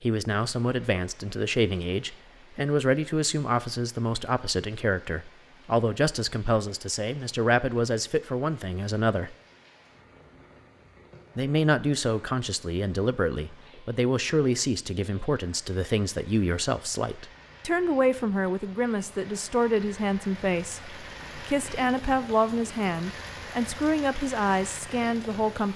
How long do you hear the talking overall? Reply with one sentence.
You can hear the talking for 24 seconds altogether.